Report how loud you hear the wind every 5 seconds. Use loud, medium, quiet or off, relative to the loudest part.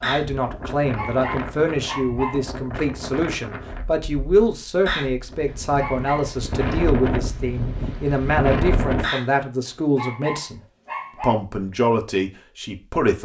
medium, loud, off.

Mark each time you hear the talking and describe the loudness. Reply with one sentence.
You can hear the talking from 0.0 to 13.1 s, at a steady volume.